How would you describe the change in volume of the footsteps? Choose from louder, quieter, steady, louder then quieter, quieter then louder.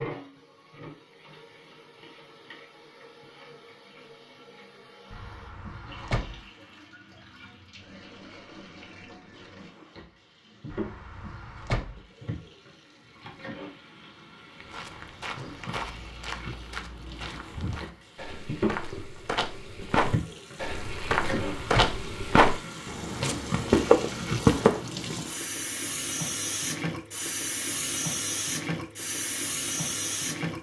louder.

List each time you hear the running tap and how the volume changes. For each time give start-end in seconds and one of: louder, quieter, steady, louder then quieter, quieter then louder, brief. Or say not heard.
0.0-30.5 louder.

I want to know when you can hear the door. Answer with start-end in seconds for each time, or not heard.
5.1-6.4, 10.7-12.0, 20.7-22.0.